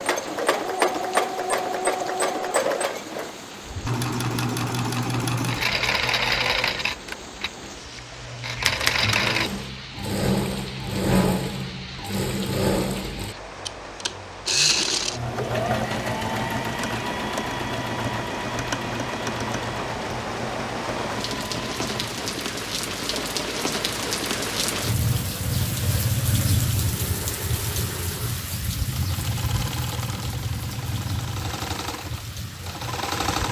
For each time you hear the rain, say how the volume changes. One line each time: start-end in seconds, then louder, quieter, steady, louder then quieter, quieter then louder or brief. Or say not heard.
0.0-33.4 louder.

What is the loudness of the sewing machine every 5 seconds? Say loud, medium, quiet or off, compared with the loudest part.
loud, loud, loud, loud, medium, quiet, medium.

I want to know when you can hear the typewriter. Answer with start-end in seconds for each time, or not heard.
8.6-9.5.